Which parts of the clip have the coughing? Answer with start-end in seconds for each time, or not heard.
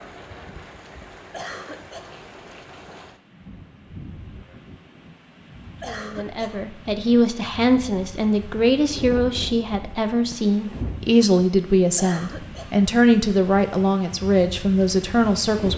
1.3-2.1, 5.8-6.6, 11.9-12.8.